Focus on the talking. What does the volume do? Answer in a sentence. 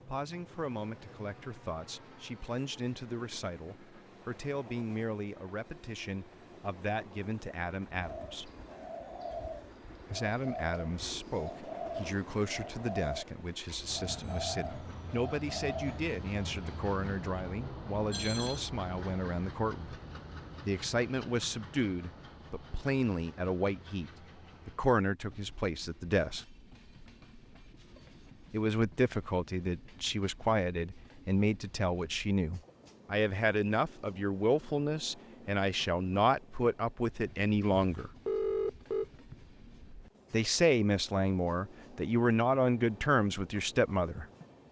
The loudness of the talking goes up.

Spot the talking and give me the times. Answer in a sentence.
You can hear the talking from 0.1 to 8.5 s, from 10.1 to 20.0 s, from 20.6 to 26.4 s, from 28.5 to 38.1 s and from 40.3 to 44.2 s.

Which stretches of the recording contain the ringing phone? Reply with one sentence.
You can hear the ringing phone from 17.9 to 18.6 s and from 37.7 to 39.4 s.